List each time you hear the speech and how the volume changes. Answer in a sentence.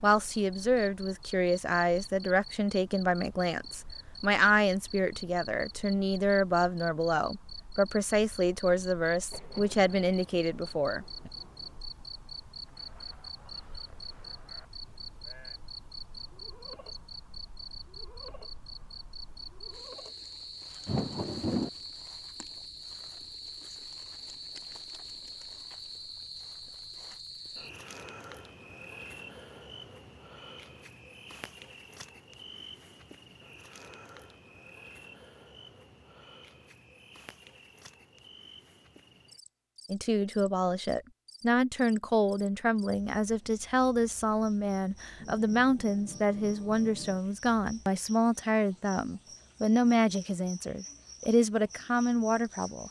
The speech can be heard from 0.0 to 11.3 s, at a steady volume; and from 39.9 to 52.8 s, at a steady volume.